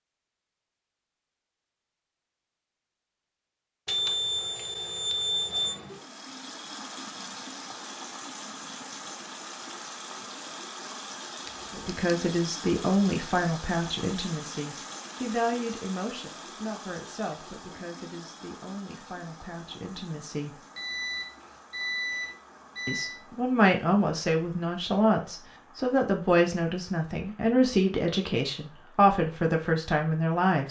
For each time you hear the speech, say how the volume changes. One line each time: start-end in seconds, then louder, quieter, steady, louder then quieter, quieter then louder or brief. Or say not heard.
11.8-20.6 quieter
22.9-30.6 steady.